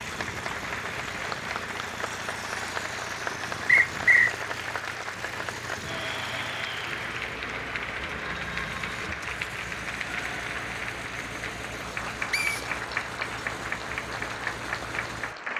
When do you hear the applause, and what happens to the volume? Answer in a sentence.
The applause can be heard from 0.0 to 15.5 s, at a steady volume.